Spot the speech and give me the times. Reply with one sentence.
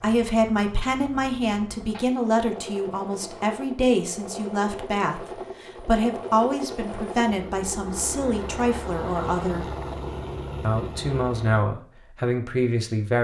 You can hear the speech from 0.0 to 9.7 s and from 10.6 to 13.1 s.